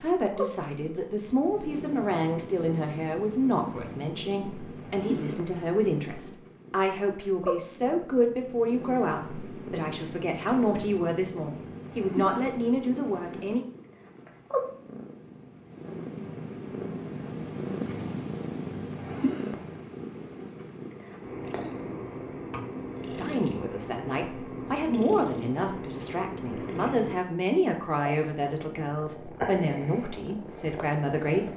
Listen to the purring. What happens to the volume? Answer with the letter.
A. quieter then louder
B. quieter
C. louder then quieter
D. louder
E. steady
E.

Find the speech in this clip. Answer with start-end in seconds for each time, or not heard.
0.0-13.7, 23.1-31.5.